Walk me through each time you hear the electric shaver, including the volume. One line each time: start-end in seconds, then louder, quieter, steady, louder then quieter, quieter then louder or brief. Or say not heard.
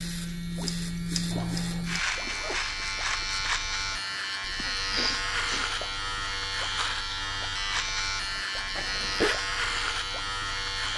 0.0-10.9 steady.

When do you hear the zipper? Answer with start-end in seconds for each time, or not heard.
1.3-3.2, 8.8-9.3.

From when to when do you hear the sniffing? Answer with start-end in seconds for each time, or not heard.
4.5-5.7.